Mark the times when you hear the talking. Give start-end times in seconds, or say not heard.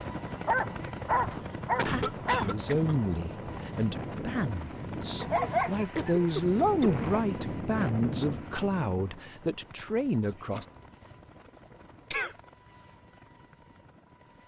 1.9-10.7.